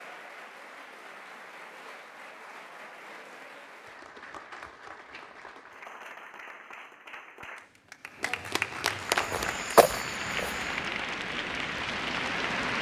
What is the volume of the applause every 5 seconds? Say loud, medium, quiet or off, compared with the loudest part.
quiet, loud, loud.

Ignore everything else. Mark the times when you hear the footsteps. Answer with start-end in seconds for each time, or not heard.
9.1-10.8.